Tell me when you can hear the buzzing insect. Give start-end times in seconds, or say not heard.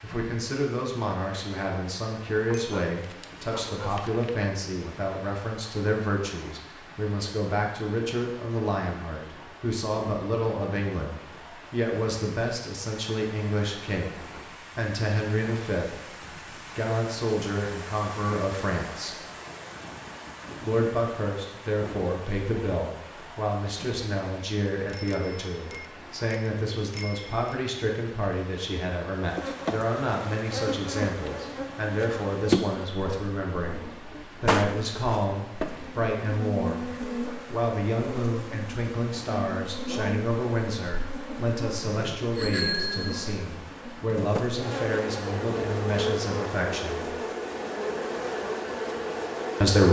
29.2-49.8.